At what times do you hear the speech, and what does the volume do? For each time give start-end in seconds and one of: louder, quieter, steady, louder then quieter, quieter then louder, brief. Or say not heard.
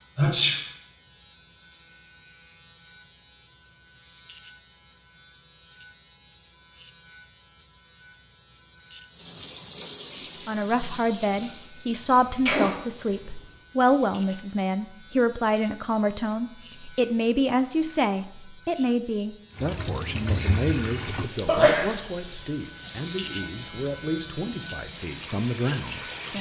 10.4-26.3 quieter.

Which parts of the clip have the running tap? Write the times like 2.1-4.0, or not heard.
9.1-11.8, 19.6-26.3.